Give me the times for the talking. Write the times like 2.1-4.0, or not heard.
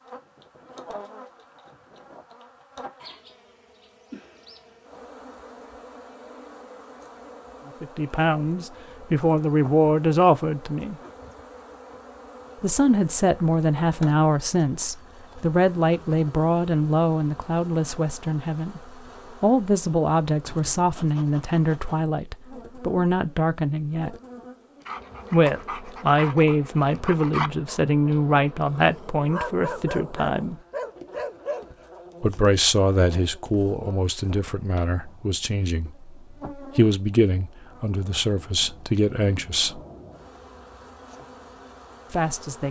7.8-10.9, 12.6-18.8, 19.4-24.1, 25.3-30.6, 32.2-39.8, 42.1-42.6.